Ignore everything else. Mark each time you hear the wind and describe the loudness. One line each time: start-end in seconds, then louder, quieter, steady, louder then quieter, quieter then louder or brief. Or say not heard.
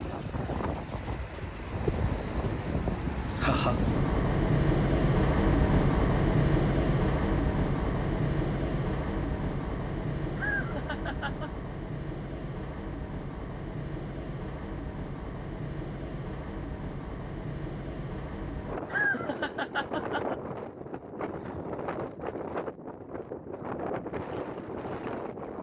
0.0-25.5 quieter.